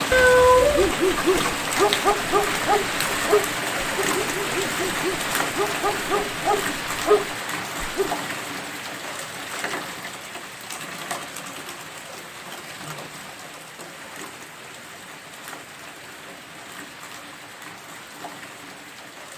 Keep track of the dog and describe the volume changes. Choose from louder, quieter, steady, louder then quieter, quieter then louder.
quieter then louder.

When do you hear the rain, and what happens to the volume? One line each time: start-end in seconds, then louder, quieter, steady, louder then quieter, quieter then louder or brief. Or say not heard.
0.0-19.3 quieter.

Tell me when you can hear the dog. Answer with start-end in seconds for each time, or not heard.
0.8-8.1.